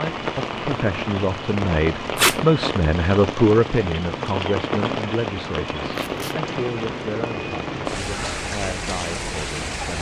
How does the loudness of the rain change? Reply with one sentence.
The loudness of the rain stays about the same.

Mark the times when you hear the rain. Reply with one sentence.
The rain can be heard from 0.0 to 9.9 s.